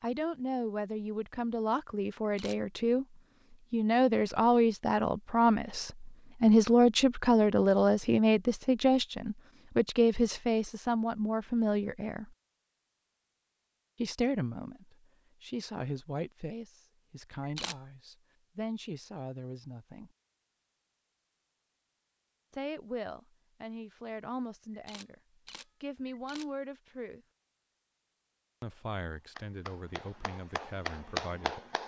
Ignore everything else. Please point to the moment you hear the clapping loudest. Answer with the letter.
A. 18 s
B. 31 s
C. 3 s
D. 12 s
B.